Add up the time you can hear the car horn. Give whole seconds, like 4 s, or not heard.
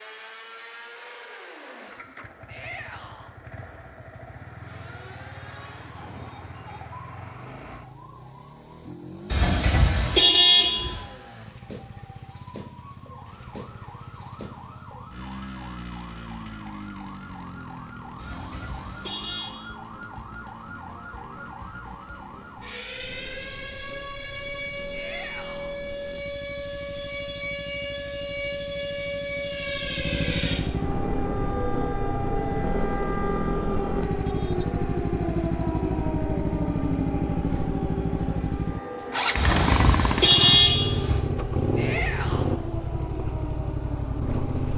5 s.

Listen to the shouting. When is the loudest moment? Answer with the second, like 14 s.
42 s.